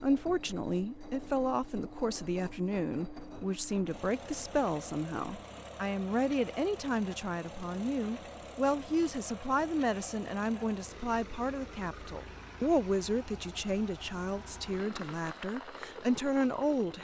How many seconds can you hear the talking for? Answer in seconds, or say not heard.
17 s.